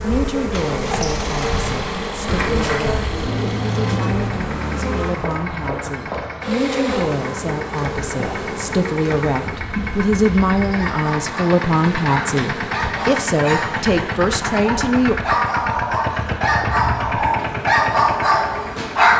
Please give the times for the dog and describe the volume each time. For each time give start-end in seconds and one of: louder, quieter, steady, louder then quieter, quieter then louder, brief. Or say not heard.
10.7-19.1 louder.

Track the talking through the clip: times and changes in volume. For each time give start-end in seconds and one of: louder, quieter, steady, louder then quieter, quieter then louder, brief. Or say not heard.
0.0-15.2 louder.